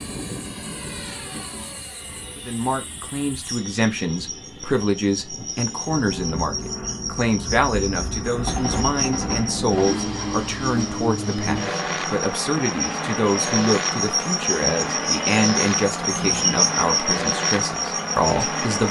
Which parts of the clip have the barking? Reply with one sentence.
The barking can't be heard in this clip.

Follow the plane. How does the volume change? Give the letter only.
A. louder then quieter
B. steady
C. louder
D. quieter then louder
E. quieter
C.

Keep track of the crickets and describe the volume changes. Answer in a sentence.
The loudness of the crickets goes up.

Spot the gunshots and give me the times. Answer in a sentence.
You can hear the gunshots from 8.4 to 10.1 s.